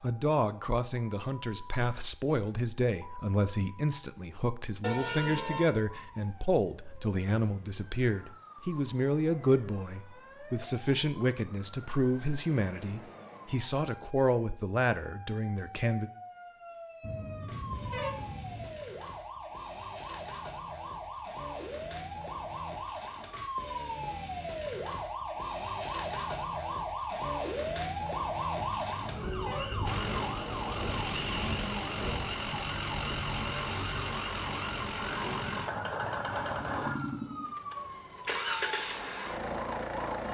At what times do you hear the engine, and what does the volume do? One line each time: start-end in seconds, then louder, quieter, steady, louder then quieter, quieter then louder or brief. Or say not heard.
29.9-40.2 steady.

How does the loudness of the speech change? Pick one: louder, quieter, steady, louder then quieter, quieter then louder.
steady.